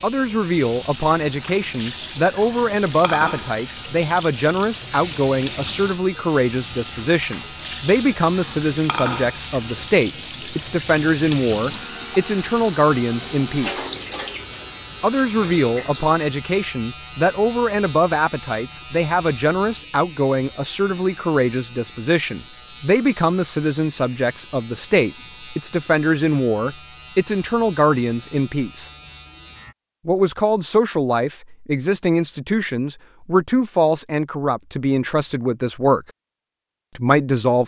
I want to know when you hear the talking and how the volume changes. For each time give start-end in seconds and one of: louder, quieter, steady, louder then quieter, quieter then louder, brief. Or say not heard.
0.0-13.9 steady
15.0-28.9 steady
30.1-36.0 steady
37.0-37.6 brief.